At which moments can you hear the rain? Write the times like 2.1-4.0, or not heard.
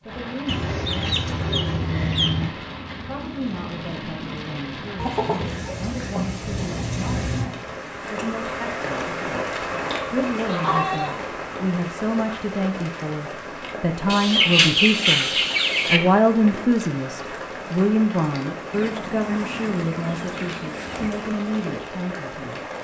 0.0-22.8.